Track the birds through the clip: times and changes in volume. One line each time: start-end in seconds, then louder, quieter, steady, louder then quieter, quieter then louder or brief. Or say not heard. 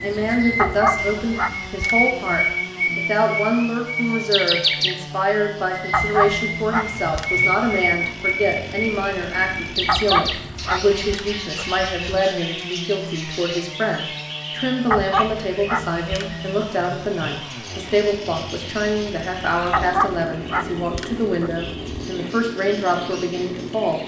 0.0-24.0 quieter.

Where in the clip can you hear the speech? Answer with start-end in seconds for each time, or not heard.
0.0-24.0.